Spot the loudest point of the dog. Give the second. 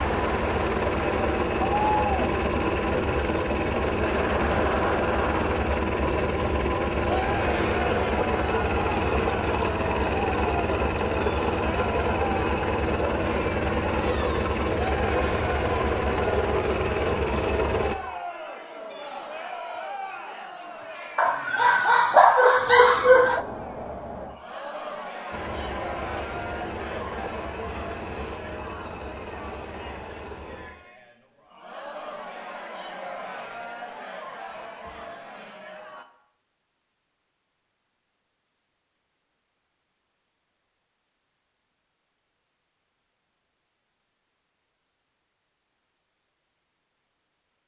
22 s.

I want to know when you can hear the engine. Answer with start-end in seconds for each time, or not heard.
0.0-17.9, 25.3-30.6.